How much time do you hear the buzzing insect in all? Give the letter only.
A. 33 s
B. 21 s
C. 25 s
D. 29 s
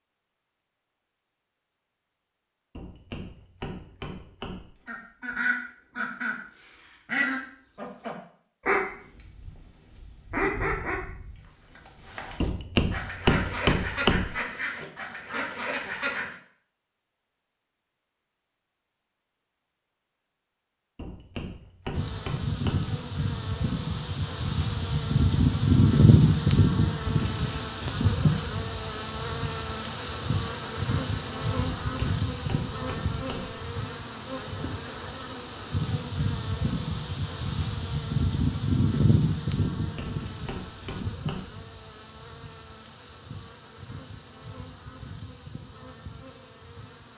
C.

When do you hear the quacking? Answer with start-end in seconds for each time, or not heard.
4.8-16.4.